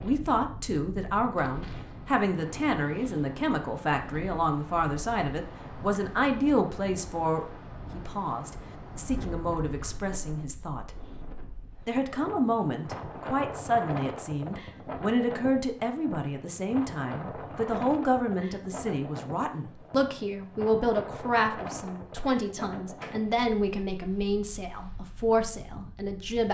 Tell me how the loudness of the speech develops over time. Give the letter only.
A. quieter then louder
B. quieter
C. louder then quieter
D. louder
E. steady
E.